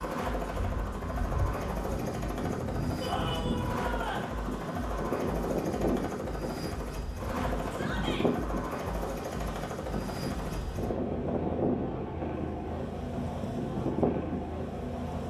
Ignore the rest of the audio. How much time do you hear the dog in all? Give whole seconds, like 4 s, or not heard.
not heard.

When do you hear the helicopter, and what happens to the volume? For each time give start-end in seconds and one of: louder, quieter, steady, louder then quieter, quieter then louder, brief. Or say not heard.
0.0-15.2 steady.